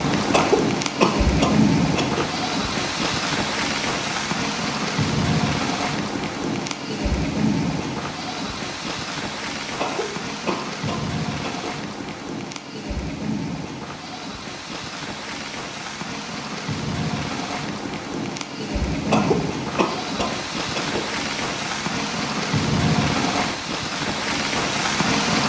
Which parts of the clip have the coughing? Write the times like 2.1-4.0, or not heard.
0.3-2.2, 9.8-11.7, 19.1-21.1.